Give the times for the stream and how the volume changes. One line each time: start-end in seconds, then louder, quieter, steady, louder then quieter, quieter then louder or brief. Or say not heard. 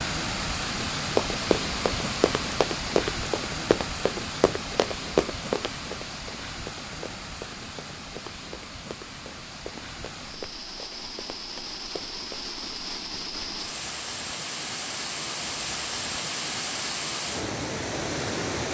0.0-18.7 quieter then louder.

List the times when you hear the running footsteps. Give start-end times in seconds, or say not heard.
1.1-12.5.